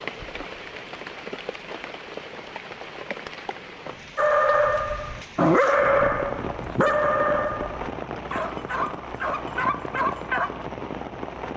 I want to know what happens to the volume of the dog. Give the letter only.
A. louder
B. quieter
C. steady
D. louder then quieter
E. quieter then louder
B.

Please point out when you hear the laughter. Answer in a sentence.
You can't hear the laughter here.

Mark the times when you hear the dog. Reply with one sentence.
You can hear the dog from 4.2 to 10.7 s.